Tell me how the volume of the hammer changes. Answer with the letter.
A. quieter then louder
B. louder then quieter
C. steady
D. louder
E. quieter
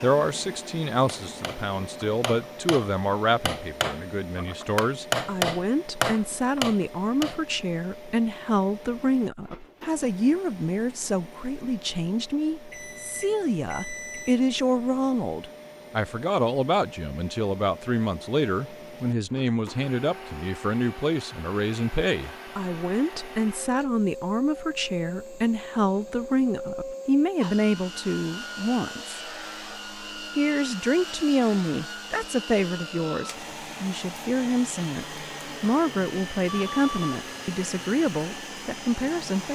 D.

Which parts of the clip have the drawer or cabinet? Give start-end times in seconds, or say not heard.
not heard.